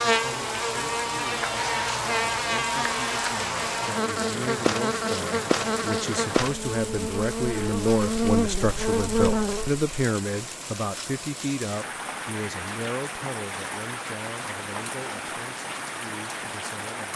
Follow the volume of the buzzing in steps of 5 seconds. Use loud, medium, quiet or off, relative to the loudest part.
loud, loud, off, off.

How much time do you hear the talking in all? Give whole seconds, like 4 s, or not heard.
17 s.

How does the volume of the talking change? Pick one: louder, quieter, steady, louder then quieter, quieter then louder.
louder then quieter.